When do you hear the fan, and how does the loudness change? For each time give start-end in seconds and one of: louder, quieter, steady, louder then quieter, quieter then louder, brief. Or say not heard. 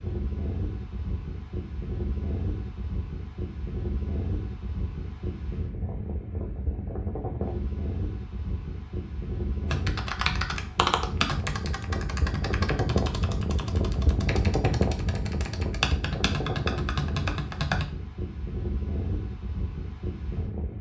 0.0-20.7 louder then quieter.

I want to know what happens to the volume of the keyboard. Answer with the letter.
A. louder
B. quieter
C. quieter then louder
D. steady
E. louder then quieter
C.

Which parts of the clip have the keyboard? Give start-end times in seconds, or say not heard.
9.7-17.9.